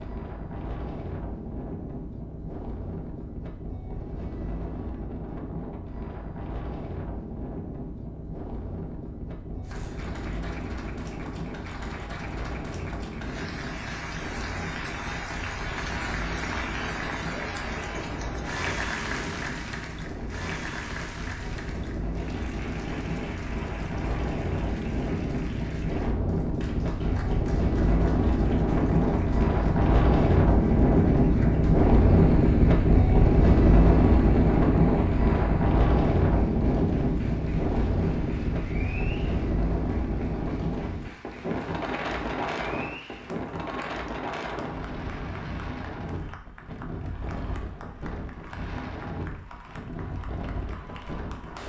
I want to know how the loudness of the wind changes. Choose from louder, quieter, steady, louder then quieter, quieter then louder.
louder then quieter.